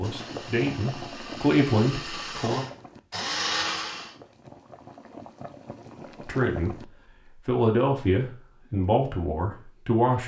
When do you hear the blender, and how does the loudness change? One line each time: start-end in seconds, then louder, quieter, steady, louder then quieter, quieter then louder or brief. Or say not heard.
0.0-4.2 louder.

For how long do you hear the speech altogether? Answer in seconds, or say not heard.
6 s.